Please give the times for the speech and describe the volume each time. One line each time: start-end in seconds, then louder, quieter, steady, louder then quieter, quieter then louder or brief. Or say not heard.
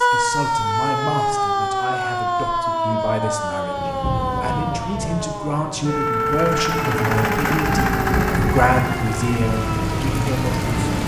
0.0-10.8 louder.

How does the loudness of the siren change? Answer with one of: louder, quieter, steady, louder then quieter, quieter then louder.
quieter.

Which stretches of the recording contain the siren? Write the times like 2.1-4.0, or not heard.
0.0-11.0.